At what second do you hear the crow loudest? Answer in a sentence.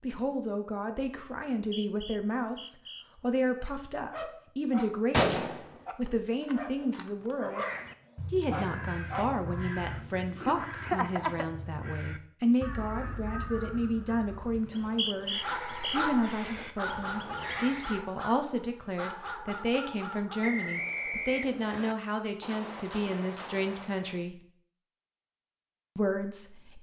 The volume of the crow peaks at 11 seconds.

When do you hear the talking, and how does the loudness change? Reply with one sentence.
The talking can be heard from 0.0 to 7.7 s, at a steady volume; from 8.3 to 24.4 s, at a steady volume; and briefly from 25.9 to 26.7 s.